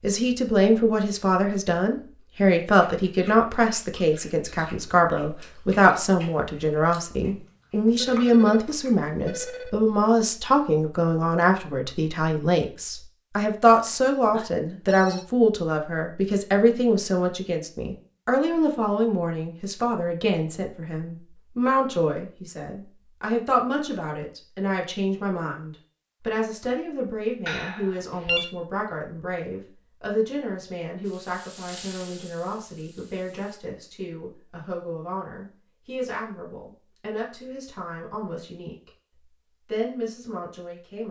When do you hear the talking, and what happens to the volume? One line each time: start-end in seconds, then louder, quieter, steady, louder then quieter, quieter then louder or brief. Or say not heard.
0.0-38.9 quieter
39.6-41.0 brief.